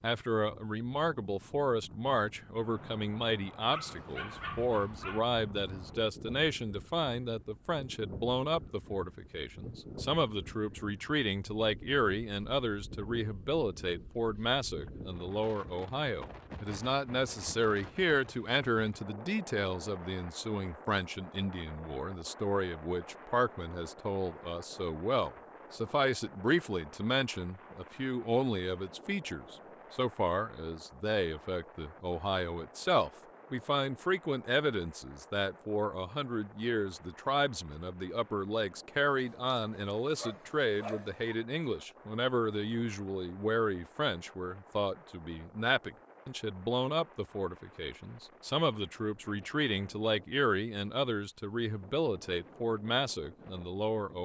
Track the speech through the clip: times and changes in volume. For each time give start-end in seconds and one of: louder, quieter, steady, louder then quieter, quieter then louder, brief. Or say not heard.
0.0-54.2 steady.